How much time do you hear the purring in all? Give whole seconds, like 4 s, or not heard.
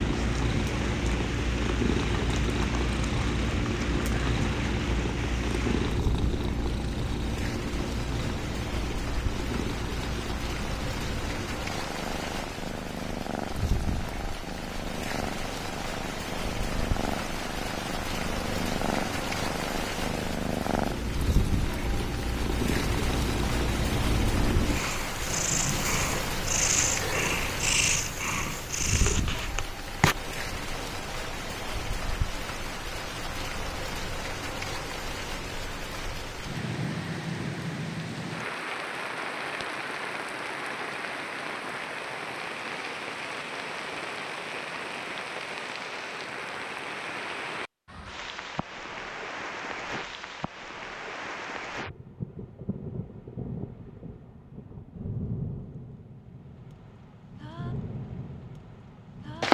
30 s.